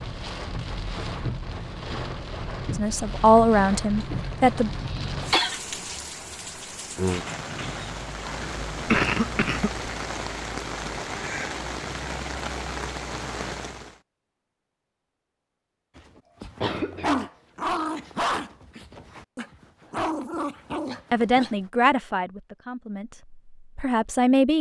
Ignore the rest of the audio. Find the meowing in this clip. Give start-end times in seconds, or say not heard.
not heard.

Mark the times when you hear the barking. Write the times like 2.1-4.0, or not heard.
15.9-21.6.